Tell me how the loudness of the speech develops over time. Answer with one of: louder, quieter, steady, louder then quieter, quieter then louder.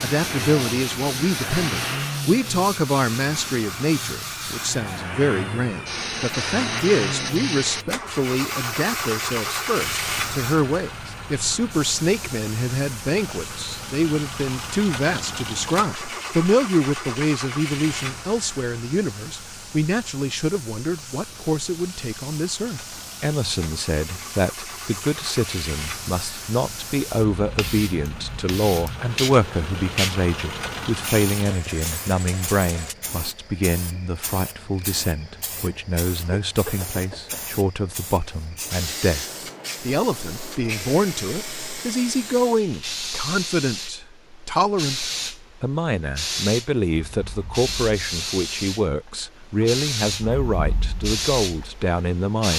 steady.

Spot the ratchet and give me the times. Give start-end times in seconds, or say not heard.
not heard.